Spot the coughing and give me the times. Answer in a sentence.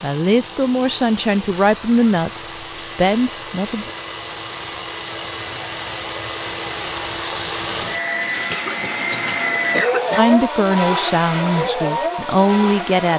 You can hear the coughing from 8.3 to 10.2 s.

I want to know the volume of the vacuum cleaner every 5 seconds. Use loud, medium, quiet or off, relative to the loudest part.
medium, loud, loud.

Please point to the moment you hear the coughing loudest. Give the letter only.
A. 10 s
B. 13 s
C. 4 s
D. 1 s
A.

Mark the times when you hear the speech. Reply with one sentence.
You can hear the speech from 0.0 to 3.9 s and from 10.2 to 13.1 s.